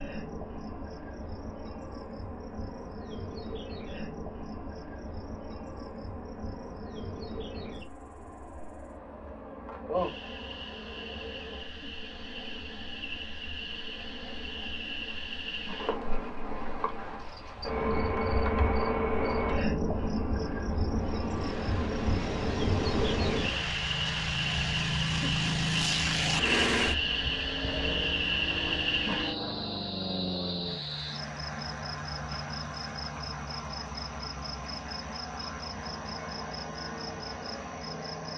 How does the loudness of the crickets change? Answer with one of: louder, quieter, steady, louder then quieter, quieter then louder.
louder then quieter.